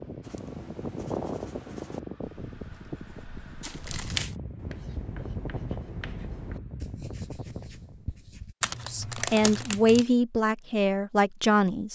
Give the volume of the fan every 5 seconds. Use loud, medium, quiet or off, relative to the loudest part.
loud, loud, off.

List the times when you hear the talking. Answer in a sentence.
You can hear the talking from 8.8 to 11.8 s.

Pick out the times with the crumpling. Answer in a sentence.
The crumpling can be heard from 3.6 to 4.3 s and from 8.6 to 10.1 s.